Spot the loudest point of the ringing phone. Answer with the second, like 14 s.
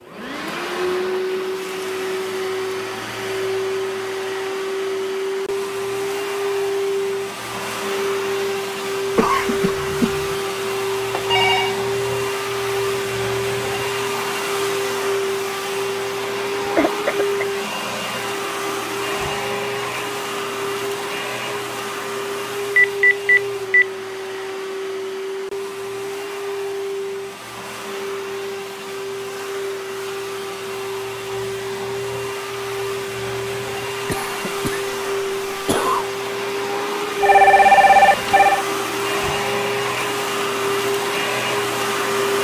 38 s.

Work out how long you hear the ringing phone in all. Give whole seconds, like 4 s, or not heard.
3 s.